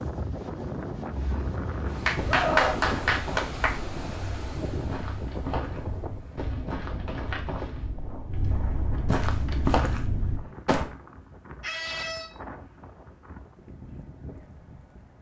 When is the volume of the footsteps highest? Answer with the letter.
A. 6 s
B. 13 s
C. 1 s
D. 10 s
D.